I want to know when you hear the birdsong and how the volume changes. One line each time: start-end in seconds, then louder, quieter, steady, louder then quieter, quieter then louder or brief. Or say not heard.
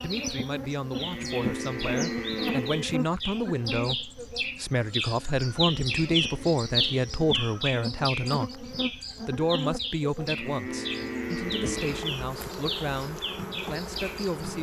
0.0-14.5 louder then quieter.